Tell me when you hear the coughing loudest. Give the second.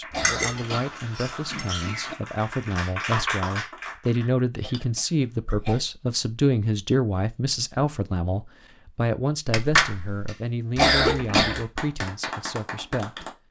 11 s.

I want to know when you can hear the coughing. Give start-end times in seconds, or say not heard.
0.1-0.9, 4.6-5.8, 10.8-11.7.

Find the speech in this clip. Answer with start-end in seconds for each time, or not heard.
0.0-13.3.